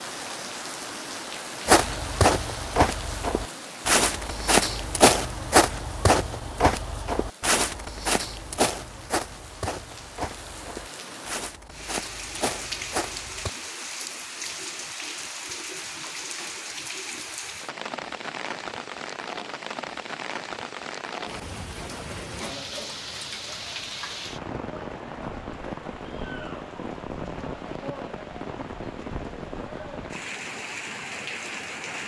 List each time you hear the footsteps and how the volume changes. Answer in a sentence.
You can hear the footsteps from 1.6 to 13.5 s, getting quieter.